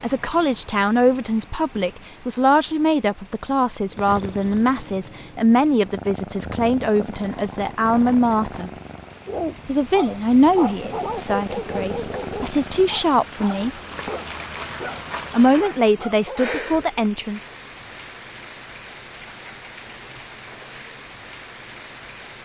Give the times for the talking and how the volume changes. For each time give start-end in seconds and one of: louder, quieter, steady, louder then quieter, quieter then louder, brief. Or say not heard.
0.0-8.7 steady
9.7-13.7 quieter then louder
15.3-17.4 brief.